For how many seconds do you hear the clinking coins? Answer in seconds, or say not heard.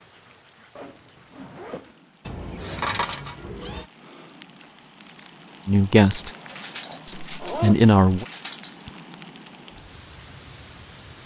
4 s.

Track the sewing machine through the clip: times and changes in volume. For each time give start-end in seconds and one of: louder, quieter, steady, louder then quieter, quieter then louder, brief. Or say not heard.
not heard.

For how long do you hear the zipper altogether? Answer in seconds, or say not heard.
3 s.